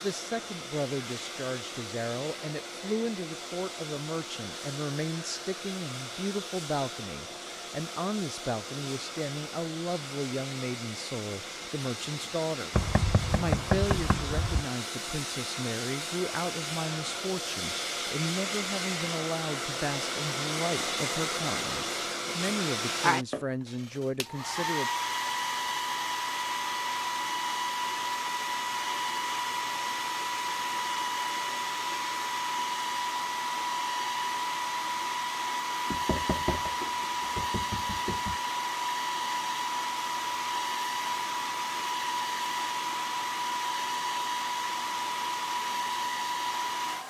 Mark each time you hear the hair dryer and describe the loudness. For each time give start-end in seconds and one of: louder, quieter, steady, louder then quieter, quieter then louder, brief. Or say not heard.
0.0-47.0 louder.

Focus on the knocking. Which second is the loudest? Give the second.
14 s.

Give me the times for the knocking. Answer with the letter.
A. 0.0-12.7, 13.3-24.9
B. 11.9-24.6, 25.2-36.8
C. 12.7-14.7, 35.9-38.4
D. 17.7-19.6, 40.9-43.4
C.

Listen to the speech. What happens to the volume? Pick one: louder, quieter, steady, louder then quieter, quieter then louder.
steady.